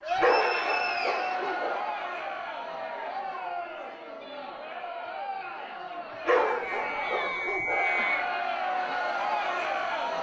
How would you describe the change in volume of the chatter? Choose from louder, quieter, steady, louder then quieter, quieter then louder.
quieter then louder.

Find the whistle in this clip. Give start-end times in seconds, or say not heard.
0.1-1.5, 6.7-8.3.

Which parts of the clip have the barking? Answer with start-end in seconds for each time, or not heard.
0.2-1.9, 6.2-8.1.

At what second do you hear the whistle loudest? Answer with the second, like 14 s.
8 s.